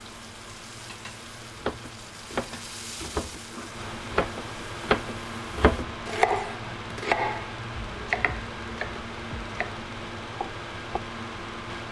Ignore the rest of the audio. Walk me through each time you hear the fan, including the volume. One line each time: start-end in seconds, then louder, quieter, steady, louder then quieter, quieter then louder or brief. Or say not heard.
0.0-11.8 louder.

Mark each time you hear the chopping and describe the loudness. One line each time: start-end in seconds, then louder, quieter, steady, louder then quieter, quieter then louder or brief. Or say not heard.
1.6-9.7 louder then quieter
10.3-11.0 brief.